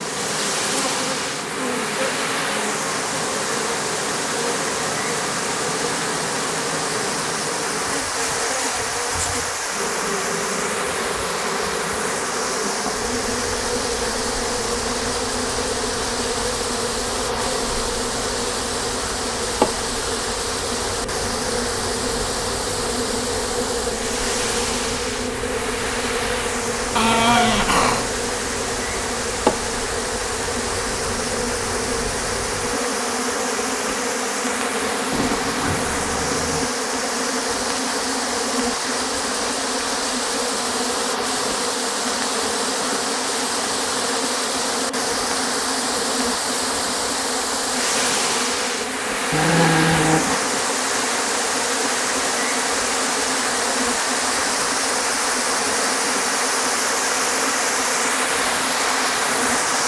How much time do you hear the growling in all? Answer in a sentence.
You can hear the growling for 2 seconds altogether.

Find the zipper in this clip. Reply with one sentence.
The zipper can be heard from 35.1 to 36.7 s.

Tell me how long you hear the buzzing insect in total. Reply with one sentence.
You can hear the buzzing insect for 60 seconds altogether.